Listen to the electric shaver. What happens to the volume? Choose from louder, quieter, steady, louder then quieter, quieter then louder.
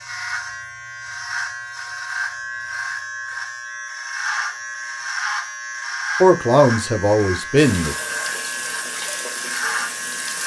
steady.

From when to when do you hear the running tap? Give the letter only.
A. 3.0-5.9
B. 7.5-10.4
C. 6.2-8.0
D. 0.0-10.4
B.